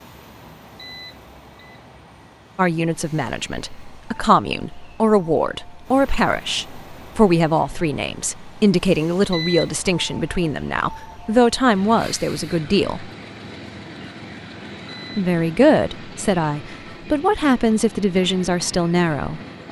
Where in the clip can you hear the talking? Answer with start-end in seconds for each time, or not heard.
2.5-13.1, 15.2-19.4.